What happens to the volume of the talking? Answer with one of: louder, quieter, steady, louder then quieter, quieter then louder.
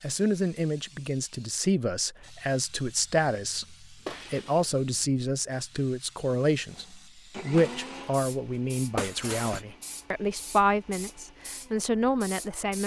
steady.